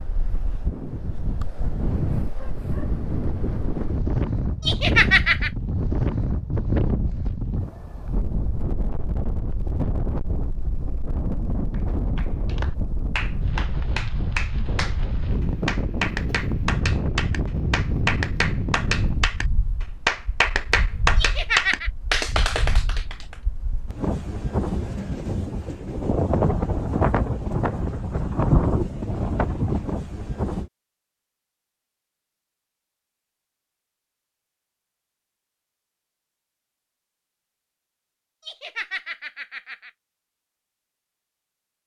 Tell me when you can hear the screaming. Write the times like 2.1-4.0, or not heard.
not heard.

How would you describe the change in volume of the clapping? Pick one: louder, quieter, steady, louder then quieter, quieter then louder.
louder.